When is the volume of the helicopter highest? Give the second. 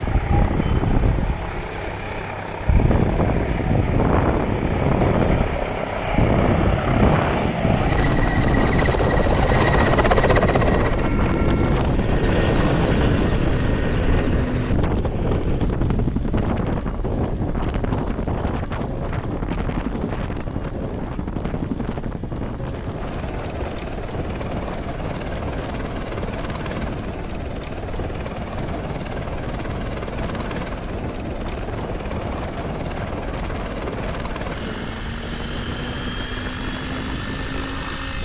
10 s.